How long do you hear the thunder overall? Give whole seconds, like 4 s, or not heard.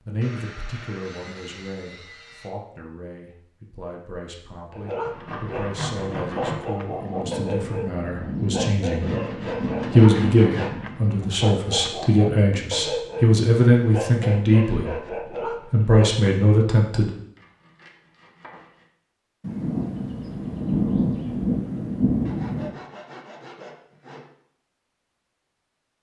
7 s.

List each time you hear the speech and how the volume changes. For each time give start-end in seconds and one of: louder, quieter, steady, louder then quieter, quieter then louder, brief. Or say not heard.
0.1-17.1 louder.